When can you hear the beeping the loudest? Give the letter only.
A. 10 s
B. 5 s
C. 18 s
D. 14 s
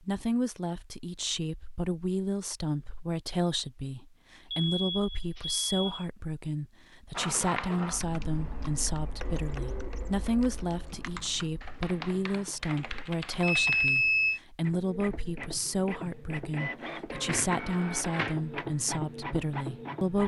D.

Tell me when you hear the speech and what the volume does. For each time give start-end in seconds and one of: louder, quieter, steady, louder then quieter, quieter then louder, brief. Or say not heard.
0.0-20.2 steady.